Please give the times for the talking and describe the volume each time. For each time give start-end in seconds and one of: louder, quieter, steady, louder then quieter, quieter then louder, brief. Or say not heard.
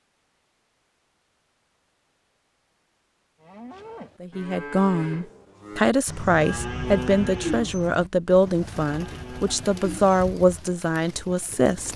4.2-11.9 steady.